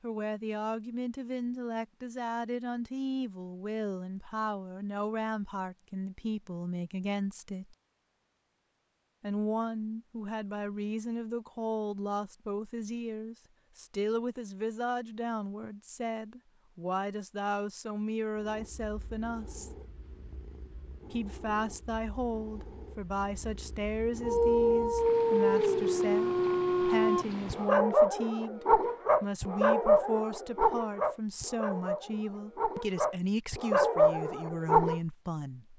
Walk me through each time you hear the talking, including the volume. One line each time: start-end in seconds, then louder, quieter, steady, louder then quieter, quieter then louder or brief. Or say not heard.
0.0-7.8 steady
9.2-19.7 steady
21.1-35.7 steady.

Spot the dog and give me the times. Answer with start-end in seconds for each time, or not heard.
24.2-35.0.